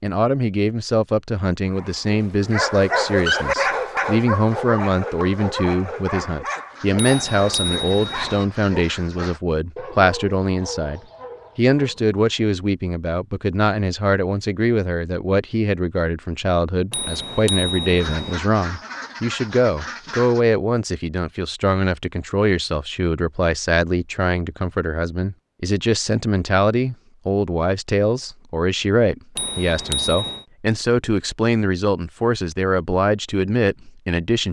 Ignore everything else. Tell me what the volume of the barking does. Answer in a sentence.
The loudness of the barking goes down.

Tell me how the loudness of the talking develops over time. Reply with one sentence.
The loudness of the talking stays about the same.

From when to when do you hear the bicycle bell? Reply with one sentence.
You can hear the bicycle bell from 7.0 to 8.4 s, from 16.9 to 18.4 s and from 29.4 to 30.4 s.